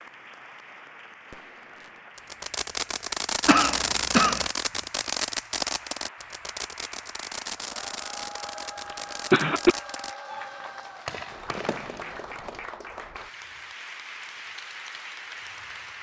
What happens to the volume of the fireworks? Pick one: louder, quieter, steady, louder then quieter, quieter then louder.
quieter.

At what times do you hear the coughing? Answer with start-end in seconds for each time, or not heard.
3.5-4.5, 8.9-9.8.